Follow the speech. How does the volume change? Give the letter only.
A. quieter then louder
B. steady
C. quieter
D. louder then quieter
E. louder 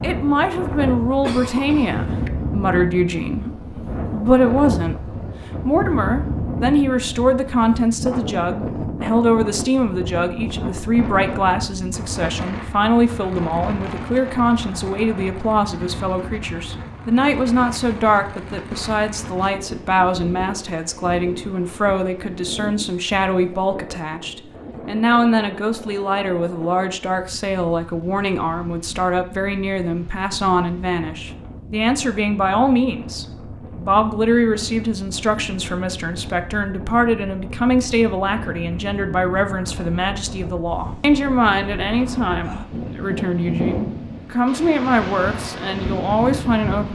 B.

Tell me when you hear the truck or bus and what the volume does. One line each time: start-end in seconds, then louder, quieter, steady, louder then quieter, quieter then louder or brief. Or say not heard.
not heard.